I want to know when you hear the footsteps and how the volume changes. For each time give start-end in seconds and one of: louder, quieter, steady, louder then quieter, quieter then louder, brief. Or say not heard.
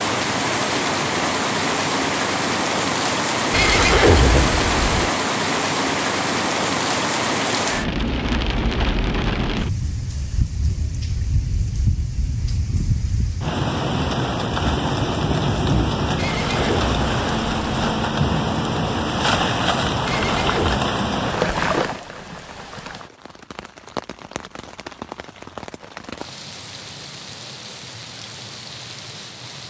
not heard.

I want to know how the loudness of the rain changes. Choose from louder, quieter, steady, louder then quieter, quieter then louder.
quieter.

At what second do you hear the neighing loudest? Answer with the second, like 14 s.
4 s.